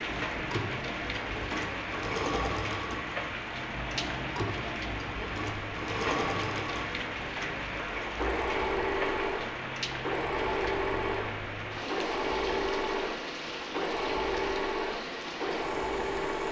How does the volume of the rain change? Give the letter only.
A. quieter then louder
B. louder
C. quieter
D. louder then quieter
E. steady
E.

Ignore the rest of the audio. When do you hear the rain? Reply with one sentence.
The rain can be heard from 0.0 to 16.4 s.